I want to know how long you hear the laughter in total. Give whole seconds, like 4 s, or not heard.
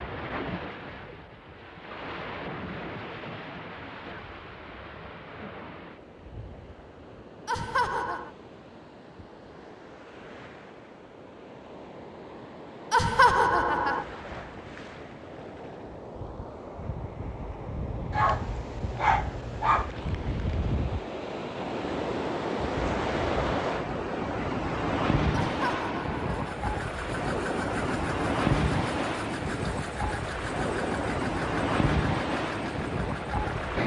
3 s.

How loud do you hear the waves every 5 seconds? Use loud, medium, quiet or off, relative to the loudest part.
medium, quiet, quiet, medium, loud, loud, loud.